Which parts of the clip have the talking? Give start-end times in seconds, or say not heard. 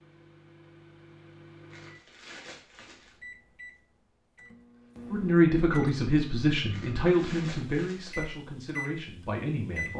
5.1-9.9.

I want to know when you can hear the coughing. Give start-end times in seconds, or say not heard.
not heard.